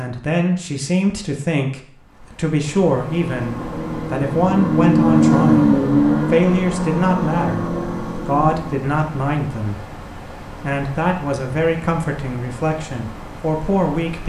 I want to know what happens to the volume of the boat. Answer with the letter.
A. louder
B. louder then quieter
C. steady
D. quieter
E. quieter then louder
B.